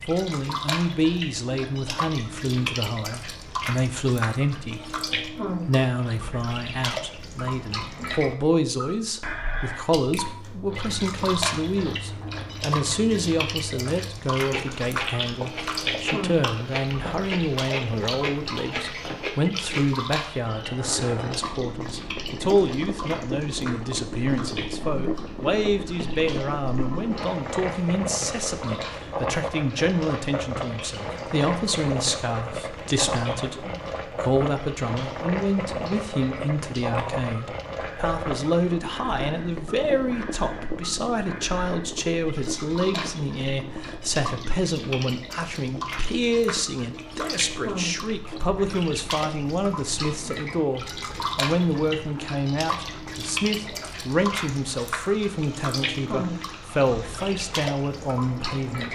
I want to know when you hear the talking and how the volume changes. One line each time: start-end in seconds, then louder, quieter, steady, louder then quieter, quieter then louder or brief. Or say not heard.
0.1-4.8 quieter then louder
5.7-58.8 steady.